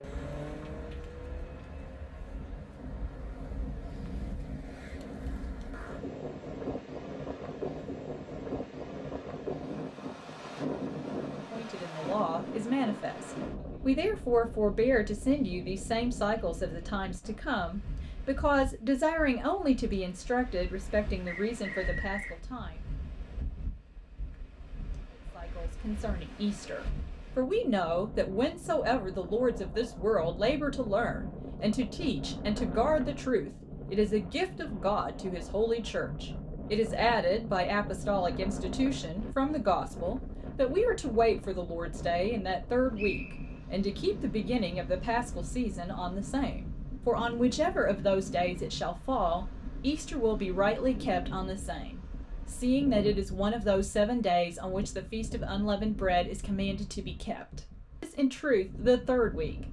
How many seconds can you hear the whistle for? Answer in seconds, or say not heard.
2 s.